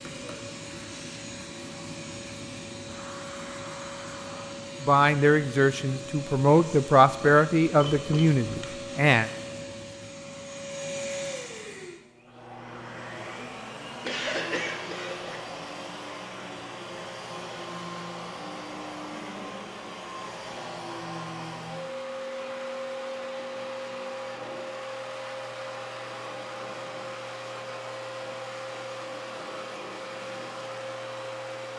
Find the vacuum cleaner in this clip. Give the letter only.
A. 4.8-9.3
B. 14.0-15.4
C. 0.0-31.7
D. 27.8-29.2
C.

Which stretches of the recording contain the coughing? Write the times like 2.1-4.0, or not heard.
14.0-15.4.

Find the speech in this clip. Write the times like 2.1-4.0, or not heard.
4.8-9.3.